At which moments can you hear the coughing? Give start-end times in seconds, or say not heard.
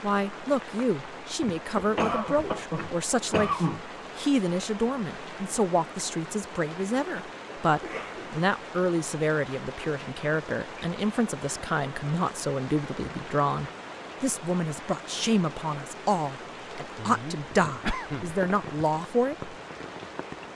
1.9-3.8, 7.8-8.4, 16.9-18.4.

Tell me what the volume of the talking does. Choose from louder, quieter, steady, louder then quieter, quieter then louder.
steady.